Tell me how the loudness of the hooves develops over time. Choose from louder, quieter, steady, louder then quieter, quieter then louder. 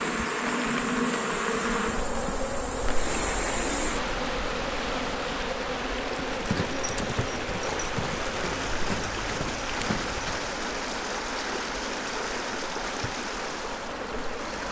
steady.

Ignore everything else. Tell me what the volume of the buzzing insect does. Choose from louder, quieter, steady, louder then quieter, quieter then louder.
quieter.